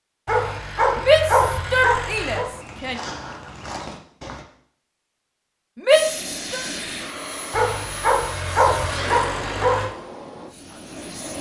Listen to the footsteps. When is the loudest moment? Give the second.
3 s.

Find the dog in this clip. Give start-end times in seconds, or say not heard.
0.2-2.5, 7.5-9.9.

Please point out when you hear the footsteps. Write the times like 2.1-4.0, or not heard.
2.4-4.5.